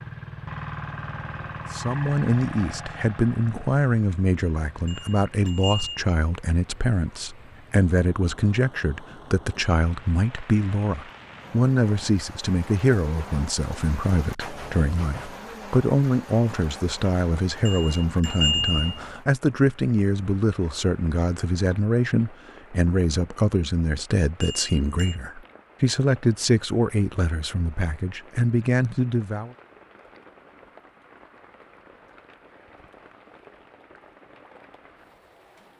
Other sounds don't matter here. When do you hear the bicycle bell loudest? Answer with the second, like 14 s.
19 s.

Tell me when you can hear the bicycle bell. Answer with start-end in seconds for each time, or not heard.
4.8-6.0, 17.6-19.0, 24.4-25.2.